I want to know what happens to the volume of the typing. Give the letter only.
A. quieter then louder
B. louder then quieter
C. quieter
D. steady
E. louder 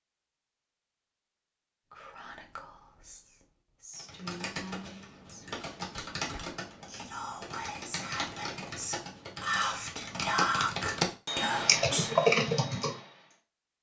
E.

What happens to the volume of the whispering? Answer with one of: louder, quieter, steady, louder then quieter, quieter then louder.
louder.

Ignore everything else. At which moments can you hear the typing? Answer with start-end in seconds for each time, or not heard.
3.9-13.3.